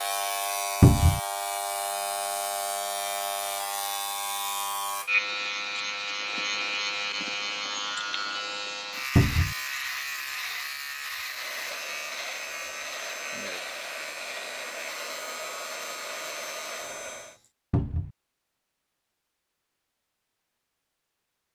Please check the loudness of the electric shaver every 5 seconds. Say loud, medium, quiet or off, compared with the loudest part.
loud, loud, medium, medium, off.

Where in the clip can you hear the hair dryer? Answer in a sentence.
The hair dryer can be heard from 11.2 to 17.4 s.